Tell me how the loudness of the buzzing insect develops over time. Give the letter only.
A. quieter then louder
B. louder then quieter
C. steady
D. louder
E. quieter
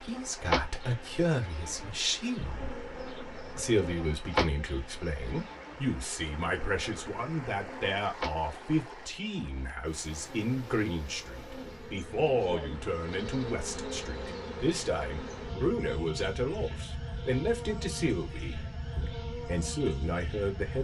A.